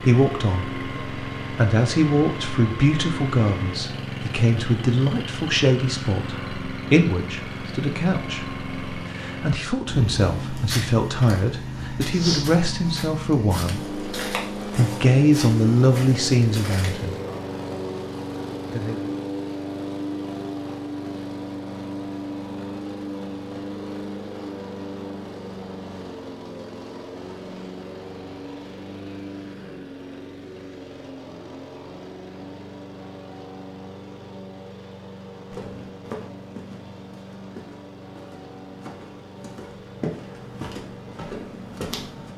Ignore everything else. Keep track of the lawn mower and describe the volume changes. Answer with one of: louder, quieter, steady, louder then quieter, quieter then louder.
quieter.